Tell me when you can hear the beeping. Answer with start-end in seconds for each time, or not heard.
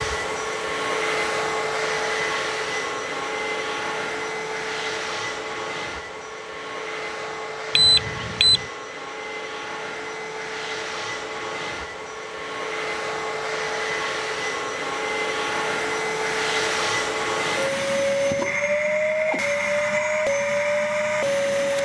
7.8-8.7.